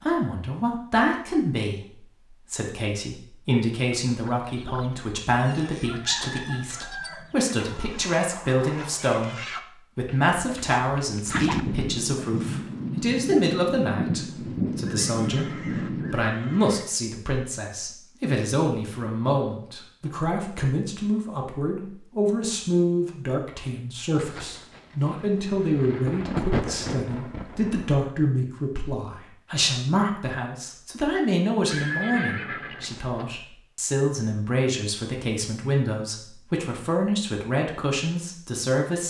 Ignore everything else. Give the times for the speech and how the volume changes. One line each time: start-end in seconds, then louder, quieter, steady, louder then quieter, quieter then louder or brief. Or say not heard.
0.0-39.0 steady.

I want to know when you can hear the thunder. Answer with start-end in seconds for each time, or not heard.
11.3-16.2, 24.1-27.9.